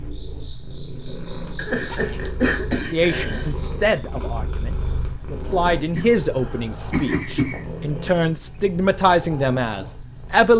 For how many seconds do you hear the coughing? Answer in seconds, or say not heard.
4 s.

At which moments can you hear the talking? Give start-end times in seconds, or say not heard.
2.9-10.5.